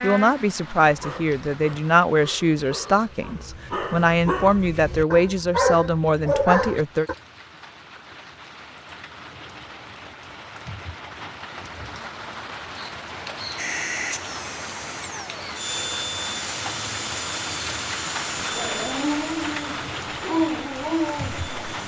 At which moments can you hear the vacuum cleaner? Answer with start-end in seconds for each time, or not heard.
13.6-21.8.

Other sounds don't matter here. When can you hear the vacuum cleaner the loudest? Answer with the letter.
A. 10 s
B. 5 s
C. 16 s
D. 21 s
C.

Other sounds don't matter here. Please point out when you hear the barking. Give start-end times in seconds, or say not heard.
0.8-7.2, 18.4-21.8.